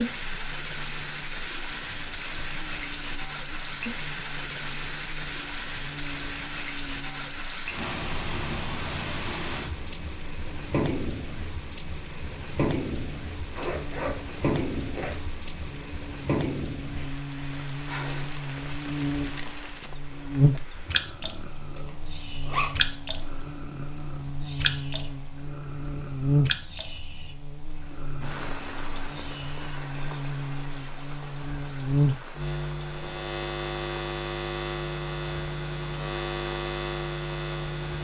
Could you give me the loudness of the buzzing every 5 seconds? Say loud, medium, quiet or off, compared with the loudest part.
quiet, quiet, quiet, medium, loud, loud, loud, loud.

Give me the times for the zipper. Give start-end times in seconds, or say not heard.
13.5-15.2, 21.8-22.7.